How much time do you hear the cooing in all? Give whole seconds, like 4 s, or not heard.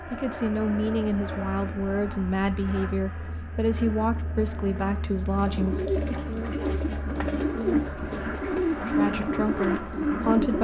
5 s.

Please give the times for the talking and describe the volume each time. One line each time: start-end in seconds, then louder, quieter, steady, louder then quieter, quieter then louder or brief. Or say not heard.
0.1-6.3 steady
8.8-10.5 brief.